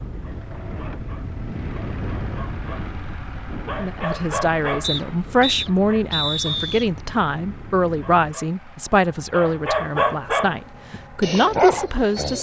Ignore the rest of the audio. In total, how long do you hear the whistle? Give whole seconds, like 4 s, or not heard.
2 s.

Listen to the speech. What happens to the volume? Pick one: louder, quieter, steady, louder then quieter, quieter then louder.
steady.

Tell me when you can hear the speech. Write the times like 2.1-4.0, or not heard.
3.8-12.3.